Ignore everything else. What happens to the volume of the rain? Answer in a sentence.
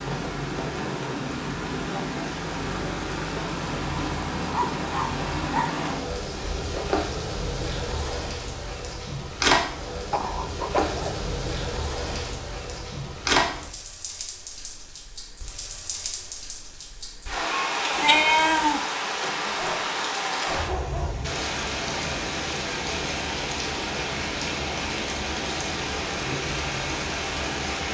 The loudness of the rain stays about the same.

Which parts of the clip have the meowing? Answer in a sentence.
The meowing can be heard from 17.9 to 18.8 s.